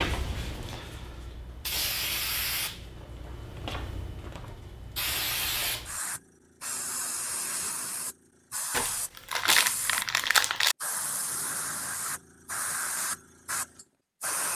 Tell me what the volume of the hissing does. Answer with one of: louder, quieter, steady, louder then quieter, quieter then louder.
steady.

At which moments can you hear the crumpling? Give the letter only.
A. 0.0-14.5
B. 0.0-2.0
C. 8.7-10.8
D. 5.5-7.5
C.